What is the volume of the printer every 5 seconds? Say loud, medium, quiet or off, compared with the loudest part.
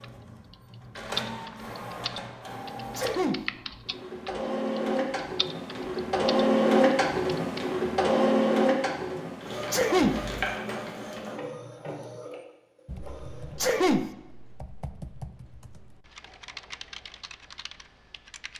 medium, loud, medium, off.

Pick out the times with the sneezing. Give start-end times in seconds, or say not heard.
3.0-3.5, 9.7-10.2, 13.6-14.1.